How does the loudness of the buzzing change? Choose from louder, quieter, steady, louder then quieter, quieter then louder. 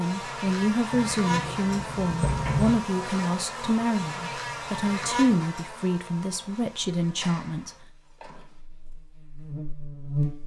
quieter then louder.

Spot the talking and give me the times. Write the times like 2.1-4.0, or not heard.
0.0-7.7.